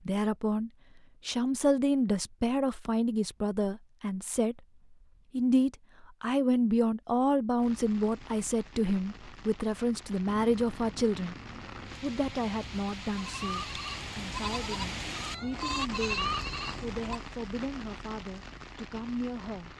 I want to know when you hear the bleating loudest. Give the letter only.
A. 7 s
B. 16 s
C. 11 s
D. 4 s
B.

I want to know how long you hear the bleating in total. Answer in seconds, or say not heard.
7 s.